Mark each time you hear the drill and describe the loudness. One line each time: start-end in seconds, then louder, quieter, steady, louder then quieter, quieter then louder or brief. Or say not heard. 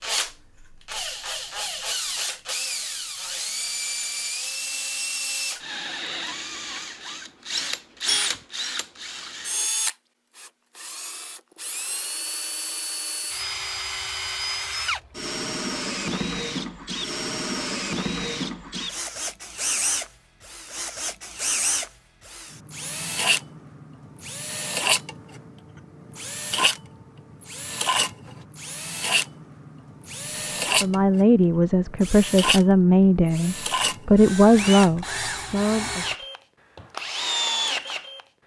0.0-38.2 steady.